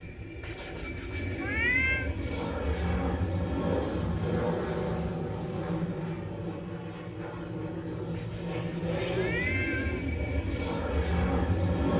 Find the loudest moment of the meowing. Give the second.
2 s.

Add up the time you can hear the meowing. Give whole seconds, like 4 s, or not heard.
4 s.